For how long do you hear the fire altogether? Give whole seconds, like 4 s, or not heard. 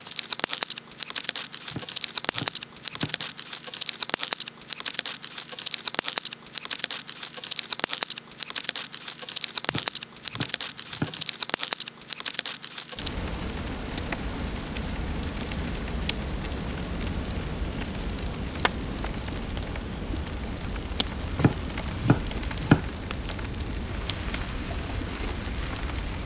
26 s.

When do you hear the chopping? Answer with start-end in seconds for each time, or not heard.
1.7-3.2, 9.7-11.2, 21.4-22.9.